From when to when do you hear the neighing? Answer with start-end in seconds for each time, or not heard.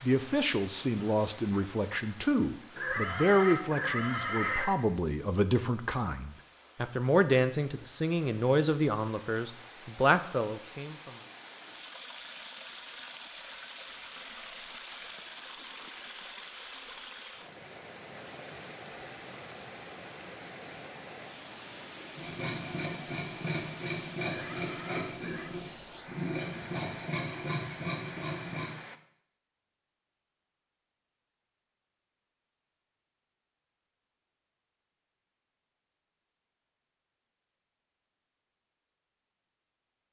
2.8-4.7, 24.2-25.6.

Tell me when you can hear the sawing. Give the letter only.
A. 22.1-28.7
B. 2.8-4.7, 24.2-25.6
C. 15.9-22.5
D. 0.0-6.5
A.